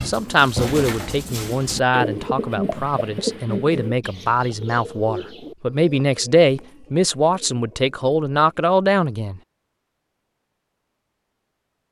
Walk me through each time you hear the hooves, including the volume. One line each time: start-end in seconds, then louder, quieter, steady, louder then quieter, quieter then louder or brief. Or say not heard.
not heard.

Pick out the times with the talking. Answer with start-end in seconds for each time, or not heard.
0.0-9.4.